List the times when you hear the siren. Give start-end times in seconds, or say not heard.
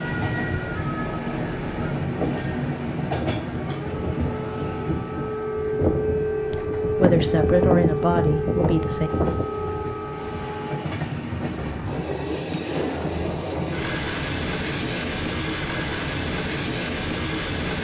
0.0-10.8.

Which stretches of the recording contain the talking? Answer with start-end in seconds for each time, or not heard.
6.5-9.1.